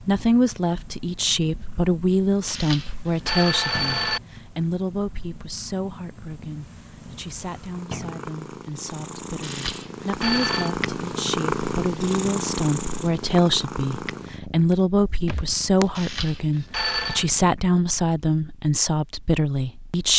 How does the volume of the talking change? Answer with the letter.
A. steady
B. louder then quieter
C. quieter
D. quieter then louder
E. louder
D.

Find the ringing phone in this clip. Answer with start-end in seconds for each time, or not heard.
2.5-4.2, 9.4-10.8, 15.9-17.2.